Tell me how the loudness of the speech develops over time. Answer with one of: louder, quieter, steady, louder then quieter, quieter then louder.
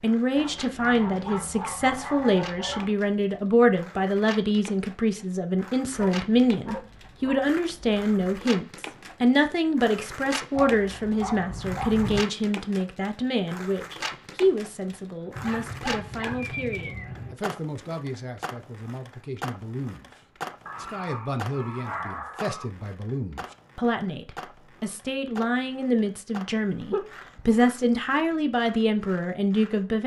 quieter then louder.